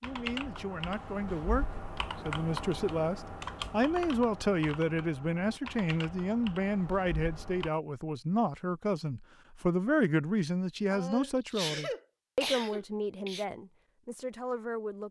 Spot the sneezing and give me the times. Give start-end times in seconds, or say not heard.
10.9-13.4.